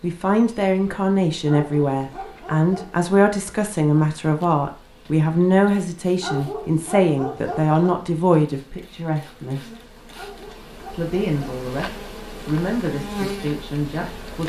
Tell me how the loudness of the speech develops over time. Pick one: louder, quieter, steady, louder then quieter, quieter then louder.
quieter.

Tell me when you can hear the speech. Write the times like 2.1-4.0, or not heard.
0.0-9.8, 10.8-14.4.